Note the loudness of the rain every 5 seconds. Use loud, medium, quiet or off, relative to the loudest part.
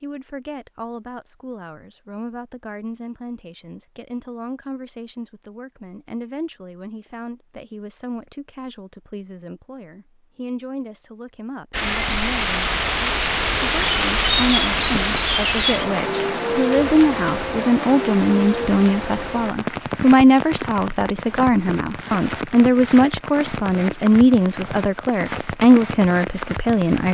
off, off, loud, loud, medium, medium.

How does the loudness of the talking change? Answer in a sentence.
The loudness of the talking goes up.